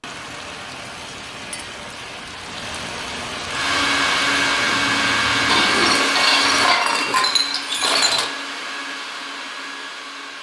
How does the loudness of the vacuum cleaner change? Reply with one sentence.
The volume of the vacuum cleaner goes down.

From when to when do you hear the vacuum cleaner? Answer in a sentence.
The vacuum cleaner can be heard from 3.4 to 10.3 s.